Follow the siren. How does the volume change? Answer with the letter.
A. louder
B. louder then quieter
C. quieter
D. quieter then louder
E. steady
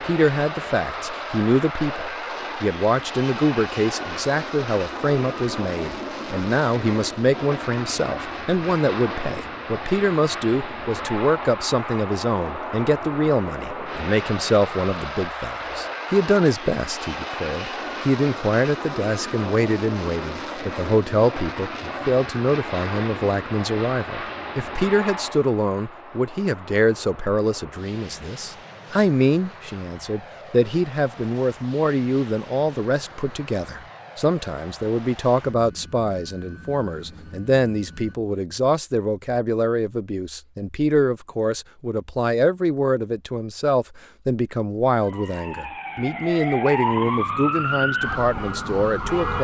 B.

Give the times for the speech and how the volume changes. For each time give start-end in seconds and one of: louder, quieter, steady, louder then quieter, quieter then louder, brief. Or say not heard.
0.1-49.3 steady.